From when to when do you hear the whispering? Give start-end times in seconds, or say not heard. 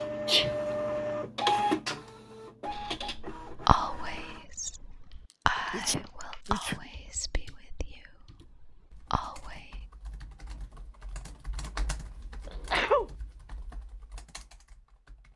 2.7-9.8.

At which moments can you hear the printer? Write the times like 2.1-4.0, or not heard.
0.0-4.5.